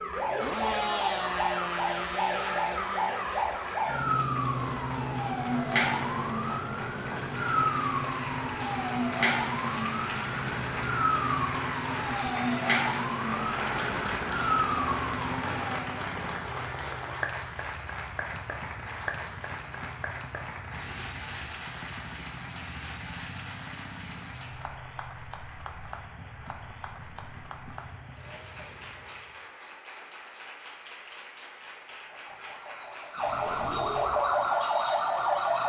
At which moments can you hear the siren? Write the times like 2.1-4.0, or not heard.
0.0-16.0, 32.1-35.6.